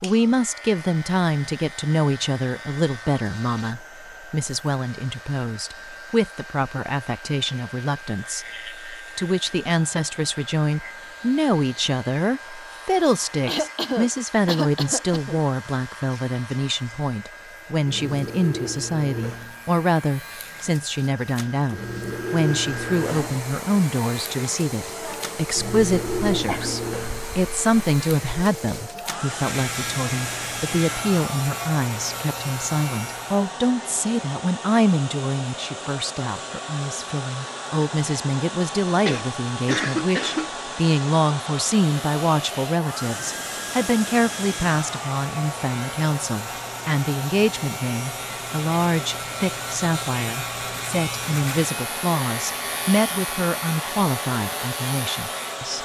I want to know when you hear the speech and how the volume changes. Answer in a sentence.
You can hear the speech from 0.0 to 55.8 s, at a steady volume.